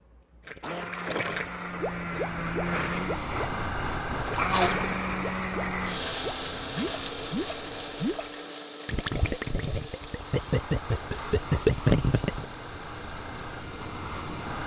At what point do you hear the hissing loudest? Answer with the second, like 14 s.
4 s.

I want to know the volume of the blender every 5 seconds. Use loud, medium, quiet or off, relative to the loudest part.
loud, loud, quiet.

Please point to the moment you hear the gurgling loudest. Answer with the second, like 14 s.
12 s.